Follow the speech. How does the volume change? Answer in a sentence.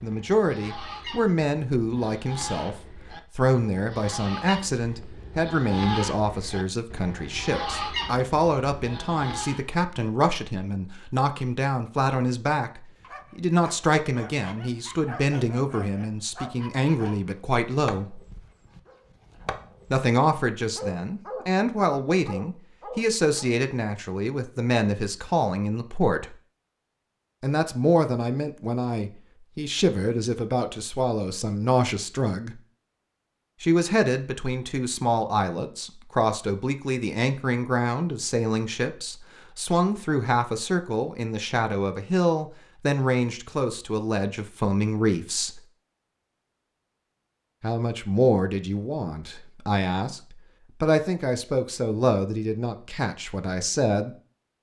The loudness of the speech stays about the same.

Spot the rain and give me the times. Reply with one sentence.
You can't hear the rain here.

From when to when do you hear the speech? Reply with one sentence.
The speech can be heard from 0.0 to 18.2 s, from 19.9 to 26.4 s, from 27.4 to 32.6 s, from 33.6 to 45.6 s and from 47.6 to 54.1 s.